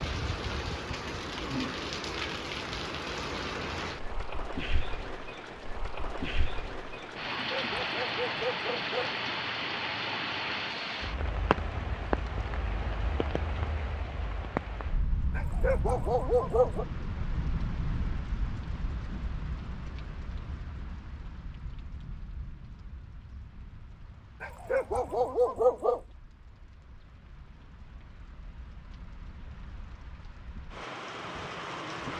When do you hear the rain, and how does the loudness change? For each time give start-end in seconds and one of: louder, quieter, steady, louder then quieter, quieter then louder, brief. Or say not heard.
0.0-32.1 quieter.